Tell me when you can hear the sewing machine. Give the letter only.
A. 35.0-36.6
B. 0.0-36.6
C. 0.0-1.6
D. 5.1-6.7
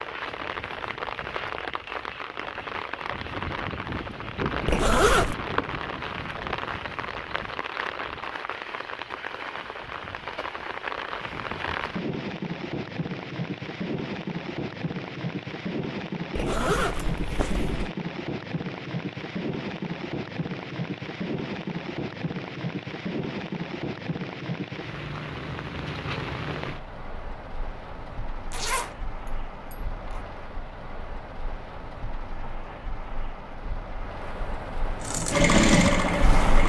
A.